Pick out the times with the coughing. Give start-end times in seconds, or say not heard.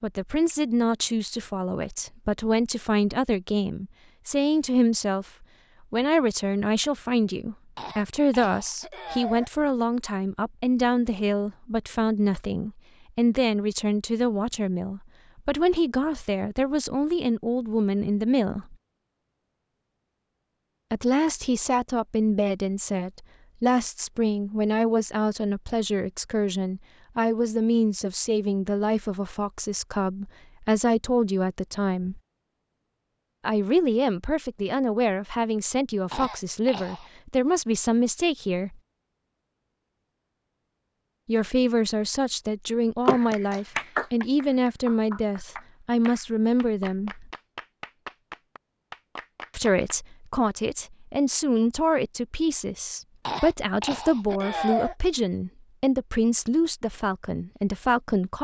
7.8-9.5, 36.1-37.1, 53.2-55.0.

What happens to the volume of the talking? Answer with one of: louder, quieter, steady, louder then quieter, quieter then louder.
steady.